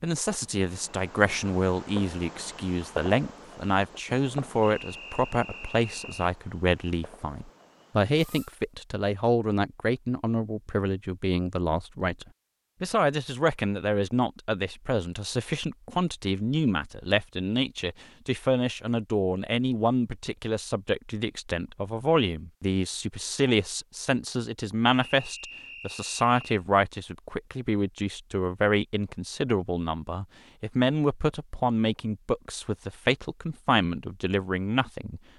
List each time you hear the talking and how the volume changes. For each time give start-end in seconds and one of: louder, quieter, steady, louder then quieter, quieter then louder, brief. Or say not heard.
0.0-35.2 steady.